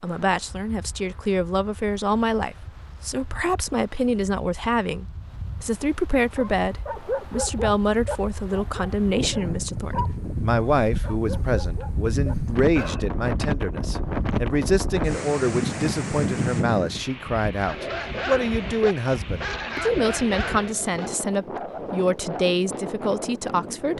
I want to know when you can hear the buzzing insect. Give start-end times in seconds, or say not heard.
not heard.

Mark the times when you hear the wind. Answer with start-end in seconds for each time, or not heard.
0.0-23.9.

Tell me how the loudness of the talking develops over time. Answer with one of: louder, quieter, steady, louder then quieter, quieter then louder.
steady.